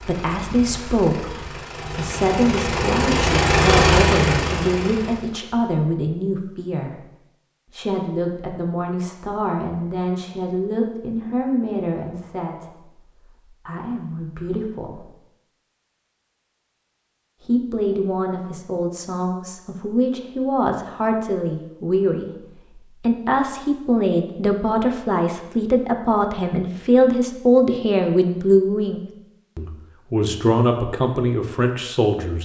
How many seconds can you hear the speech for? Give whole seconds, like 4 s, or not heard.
29 s.